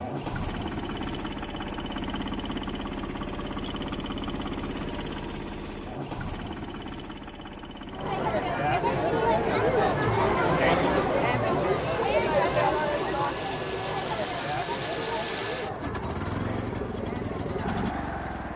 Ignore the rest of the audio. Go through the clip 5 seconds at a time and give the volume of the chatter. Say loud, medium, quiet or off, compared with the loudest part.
off, loud, loud, medium.